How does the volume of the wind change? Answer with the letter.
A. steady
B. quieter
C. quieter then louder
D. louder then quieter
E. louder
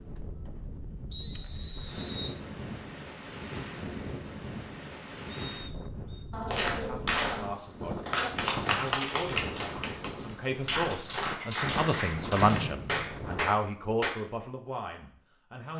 A.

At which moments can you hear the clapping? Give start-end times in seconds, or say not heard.
6.3-14.1.